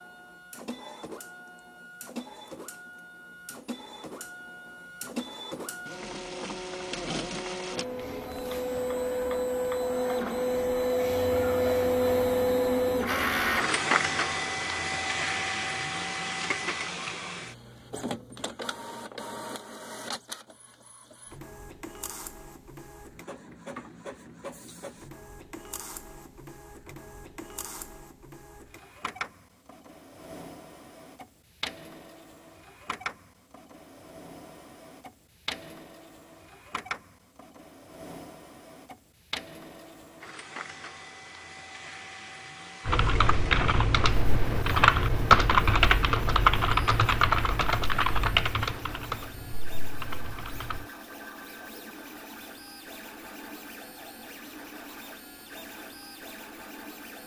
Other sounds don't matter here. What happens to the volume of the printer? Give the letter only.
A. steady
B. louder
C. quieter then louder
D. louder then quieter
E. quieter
E.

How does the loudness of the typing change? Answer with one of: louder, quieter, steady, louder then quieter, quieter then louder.
louder then quieter.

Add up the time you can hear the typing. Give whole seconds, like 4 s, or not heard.
8 s.